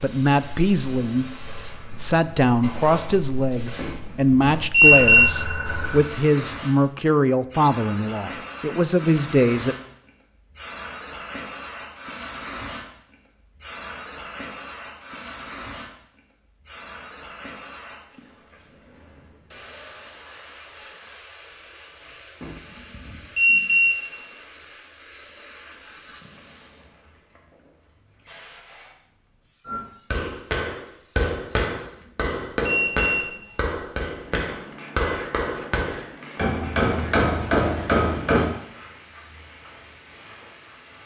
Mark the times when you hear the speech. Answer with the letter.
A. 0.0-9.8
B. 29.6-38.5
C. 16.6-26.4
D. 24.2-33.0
A.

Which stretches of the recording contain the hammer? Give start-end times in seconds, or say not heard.
29.6-38.5.